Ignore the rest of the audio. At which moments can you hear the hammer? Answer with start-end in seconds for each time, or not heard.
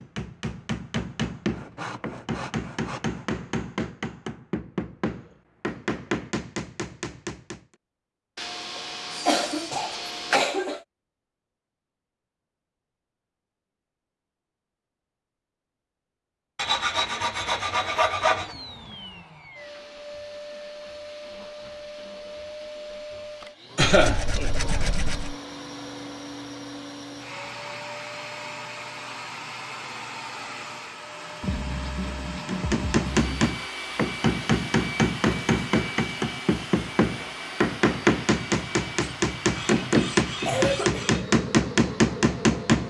0.0-7.6, 32.5-42.8.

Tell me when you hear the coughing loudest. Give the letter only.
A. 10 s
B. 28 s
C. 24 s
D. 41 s
C.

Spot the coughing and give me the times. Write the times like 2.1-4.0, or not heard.
9.2-10.8, 23.8-24.2, 40.5-41.0.